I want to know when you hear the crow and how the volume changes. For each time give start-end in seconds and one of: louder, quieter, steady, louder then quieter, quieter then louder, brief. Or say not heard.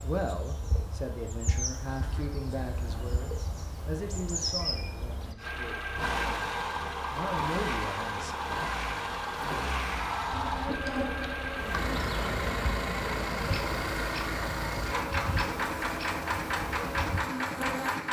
not heard.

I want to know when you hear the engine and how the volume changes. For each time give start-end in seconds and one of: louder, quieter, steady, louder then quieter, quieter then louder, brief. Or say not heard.
5.3-18.0 steady.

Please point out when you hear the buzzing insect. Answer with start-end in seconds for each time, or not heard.
0.0-5.3, 10.3-18.0.